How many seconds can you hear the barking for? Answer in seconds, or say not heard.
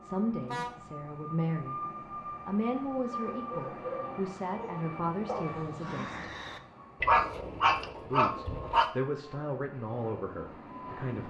6 s.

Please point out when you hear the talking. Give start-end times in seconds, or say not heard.
0.0-1.8, 2.5-6.3, 8.0-11.2.